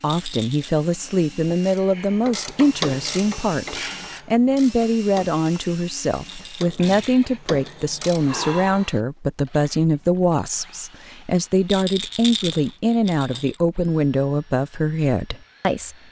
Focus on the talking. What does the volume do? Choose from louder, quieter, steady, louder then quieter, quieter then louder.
steady.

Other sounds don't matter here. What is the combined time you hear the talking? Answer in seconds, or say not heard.
16 s.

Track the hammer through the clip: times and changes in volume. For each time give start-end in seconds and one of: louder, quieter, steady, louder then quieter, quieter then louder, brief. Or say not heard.
not heard.